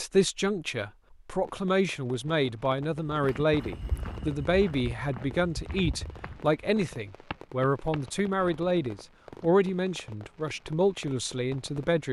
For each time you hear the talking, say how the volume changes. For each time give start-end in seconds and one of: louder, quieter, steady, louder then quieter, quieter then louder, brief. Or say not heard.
0.0-12.0 steady.